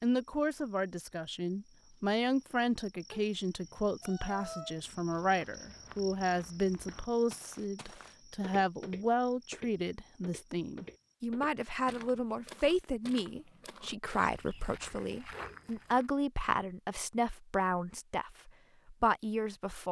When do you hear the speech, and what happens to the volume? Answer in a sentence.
The speech can be heard from 0.0 to 19.8 s, at a steady volume.